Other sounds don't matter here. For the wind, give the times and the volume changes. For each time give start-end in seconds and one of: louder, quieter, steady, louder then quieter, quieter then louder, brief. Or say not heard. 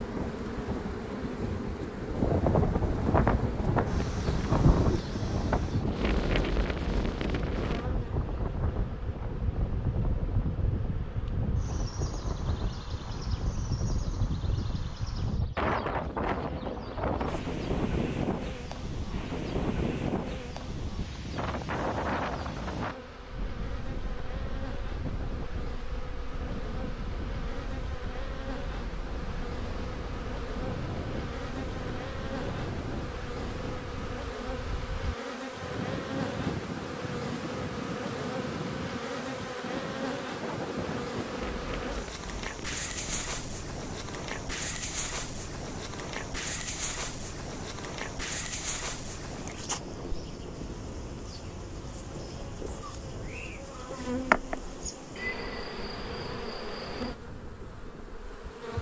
0.0-58.7 quieter.